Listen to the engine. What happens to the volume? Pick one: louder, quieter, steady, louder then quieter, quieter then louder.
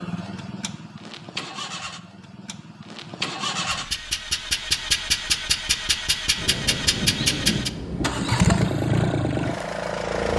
louder.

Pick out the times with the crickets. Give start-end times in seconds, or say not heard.
not heard.